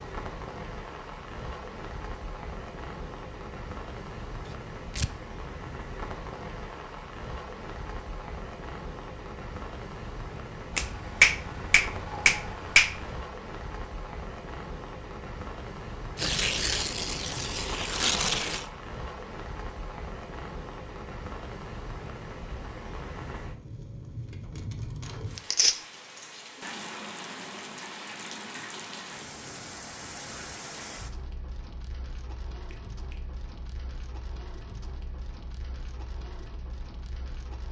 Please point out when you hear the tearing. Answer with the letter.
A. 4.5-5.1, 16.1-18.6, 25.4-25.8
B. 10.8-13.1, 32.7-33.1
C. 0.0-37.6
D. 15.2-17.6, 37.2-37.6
A.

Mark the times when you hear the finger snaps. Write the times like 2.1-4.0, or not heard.
10.8-13.1, 32.7-33.1.